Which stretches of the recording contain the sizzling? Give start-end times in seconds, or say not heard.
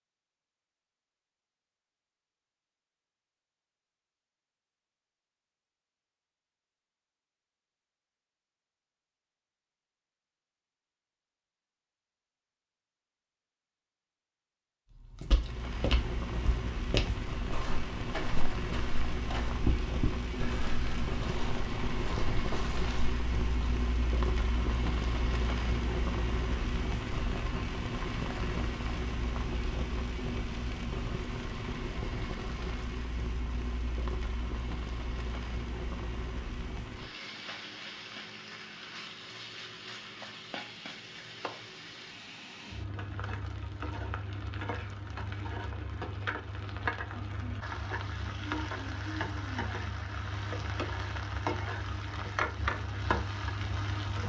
15.2-54.2.